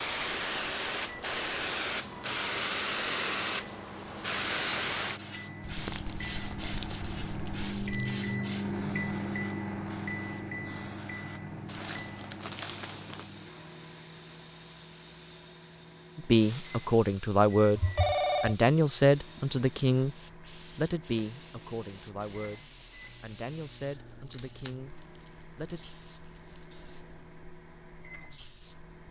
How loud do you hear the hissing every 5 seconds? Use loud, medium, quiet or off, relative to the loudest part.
loud, medium, quiet, quiet, quiet, quiet.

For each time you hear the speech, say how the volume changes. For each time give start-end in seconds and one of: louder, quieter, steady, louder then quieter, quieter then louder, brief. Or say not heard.
16.1-25.8 quieter.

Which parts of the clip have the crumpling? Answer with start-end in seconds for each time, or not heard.
5.7-8.2, 11.7-13.2, 24.1-26.6.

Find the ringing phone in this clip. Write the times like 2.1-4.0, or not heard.
17.8-18.6.